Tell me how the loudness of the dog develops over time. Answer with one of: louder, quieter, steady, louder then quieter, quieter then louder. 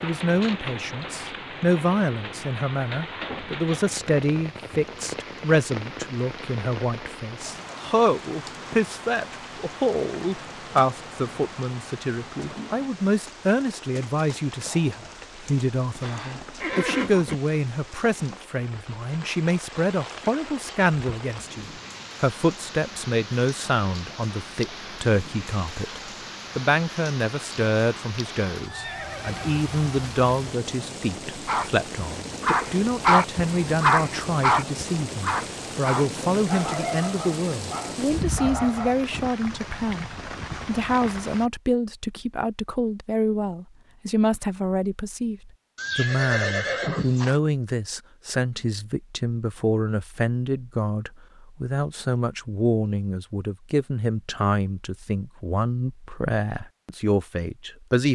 quieter.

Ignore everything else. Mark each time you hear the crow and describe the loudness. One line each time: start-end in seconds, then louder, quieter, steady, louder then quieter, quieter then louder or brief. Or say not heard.
not heard.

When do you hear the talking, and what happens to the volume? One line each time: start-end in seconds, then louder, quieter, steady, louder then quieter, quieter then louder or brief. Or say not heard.
0.0-58.1 steady.